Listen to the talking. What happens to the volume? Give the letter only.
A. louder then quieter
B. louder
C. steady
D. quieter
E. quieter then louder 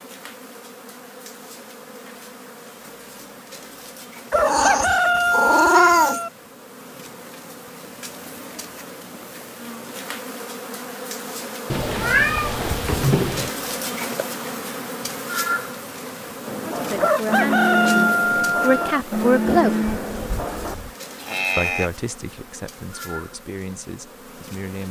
A.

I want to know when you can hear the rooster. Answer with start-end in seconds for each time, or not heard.
4.3-6.3, 17.0-19.0.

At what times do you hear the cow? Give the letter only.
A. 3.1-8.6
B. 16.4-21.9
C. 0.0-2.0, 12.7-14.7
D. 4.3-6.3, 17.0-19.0
B.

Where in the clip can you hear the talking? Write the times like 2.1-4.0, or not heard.
16.6-19.8, 21.6-24.8.